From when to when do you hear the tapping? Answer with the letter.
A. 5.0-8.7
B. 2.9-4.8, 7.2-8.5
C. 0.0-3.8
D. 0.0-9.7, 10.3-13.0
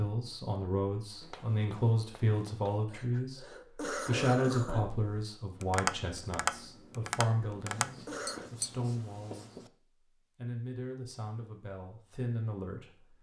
A.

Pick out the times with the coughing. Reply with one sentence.
The coughing can be heard from 2.9 to 4.8 s and from 7.2 to 8.5 s.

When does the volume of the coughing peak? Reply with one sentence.
The volume of the coughing peaks at 4 seconds.